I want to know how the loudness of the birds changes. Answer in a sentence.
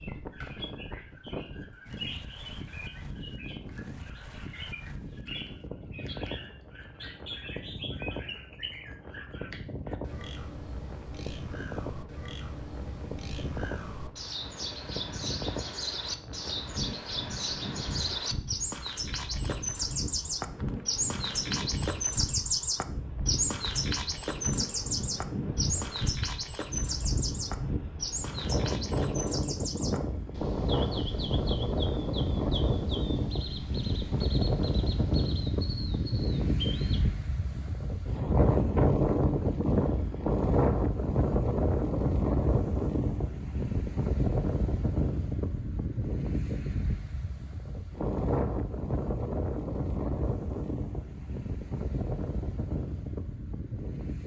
The loudness of the birds goes up, then down.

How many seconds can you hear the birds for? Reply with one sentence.
You can hear the birds for 37 seconds altogether.